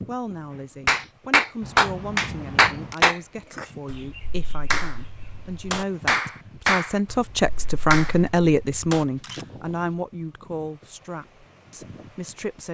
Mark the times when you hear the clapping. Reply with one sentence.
You can hear the clapping from 0.8 to 9.1 s.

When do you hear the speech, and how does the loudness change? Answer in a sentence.
You can hear the speech from 0.1 to 12.6 s, getting louder then quieter.